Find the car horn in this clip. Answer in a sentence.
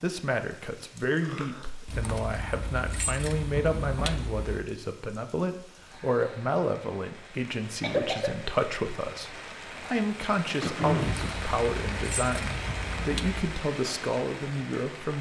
You can't hear the car horn here.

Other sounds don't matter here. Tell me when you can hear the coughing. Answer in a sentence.
You can hear the coughing from 1.2 to 1.6 s, from 7.8 to 8.4 s and from 10.6 to 11.3 s.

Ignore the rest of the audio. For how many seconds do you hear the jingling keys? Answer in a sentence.
The jingling keys can be heard for 5 seconds in total.